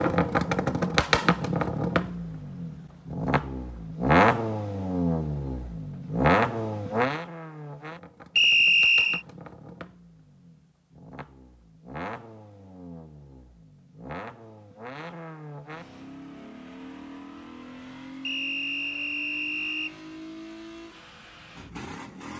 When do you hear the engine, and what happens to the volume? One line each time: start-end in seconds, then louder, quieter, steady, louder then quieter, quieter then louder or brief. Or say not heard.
0.0-22.3 quieter.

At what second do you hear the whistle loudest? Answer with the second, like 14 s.
9 s.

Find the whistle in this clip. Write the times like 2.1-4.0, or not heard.
8.3-9.2, 18.2-19.9.